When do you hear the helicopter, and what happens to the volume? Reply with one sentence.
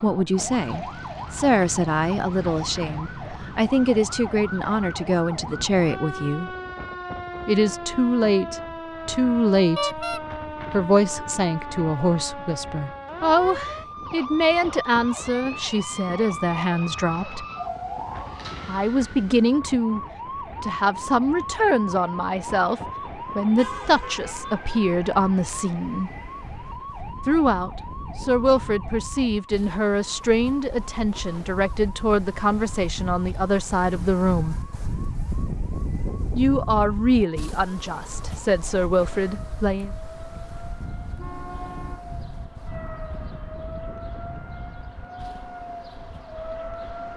You can't hear the helicopter here.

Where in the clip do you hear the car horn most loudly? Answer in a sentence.
The loudest moment of the car horn is at 10 seconds.